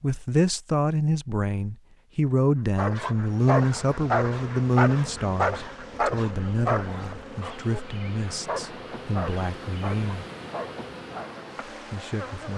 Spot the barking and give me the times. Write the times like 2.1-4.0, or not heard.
2.8-11.3.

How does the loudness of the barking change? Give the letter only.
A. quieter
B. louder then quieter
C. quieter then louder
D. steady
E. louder
A.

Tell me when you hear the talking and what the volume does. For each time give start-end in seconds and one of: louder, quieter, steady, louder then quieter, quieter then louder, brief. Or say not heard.
0.0-10.2 quieter
11.9-12.5 brief.